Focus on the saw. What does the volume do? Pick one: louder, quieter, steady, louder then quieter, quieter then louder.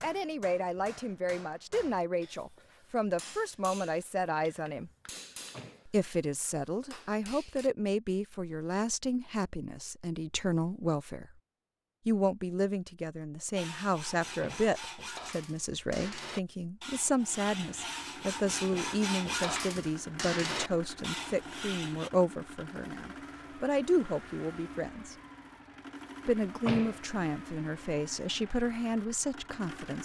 louder.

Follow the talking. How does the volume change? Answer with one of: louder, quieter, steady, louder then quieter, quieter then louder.
steady.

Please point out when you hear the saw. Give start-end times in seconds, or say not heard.
13.6-22.1.